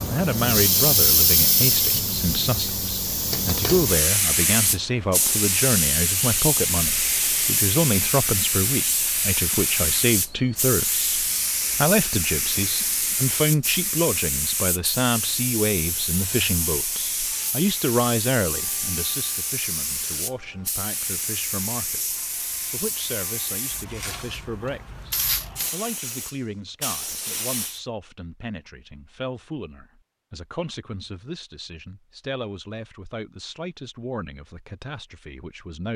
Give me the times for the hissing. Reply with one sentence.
The hissing can be heard from 0.0 to 27.8 s.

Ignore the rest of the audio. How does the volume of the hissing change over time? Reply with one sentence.
The volume of the hissing goes down.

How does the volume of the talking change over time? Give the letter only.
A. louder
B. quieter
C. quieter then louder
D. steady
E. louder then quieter
B.